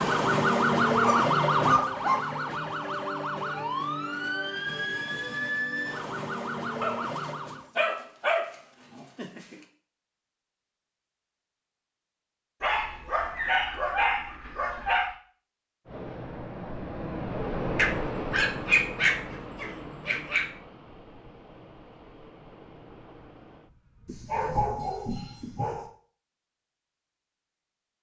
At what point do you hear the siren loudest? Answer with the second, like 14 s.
1 s.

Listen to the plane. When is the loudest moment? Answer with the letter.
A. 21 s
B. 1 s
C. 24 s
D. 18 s
D.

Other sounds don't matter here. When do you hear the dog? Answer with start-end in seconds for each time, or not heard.
0.9-2.2, 6.8-9.6, 12.6-15.2, 17.8-20.5, 24.1-25.9.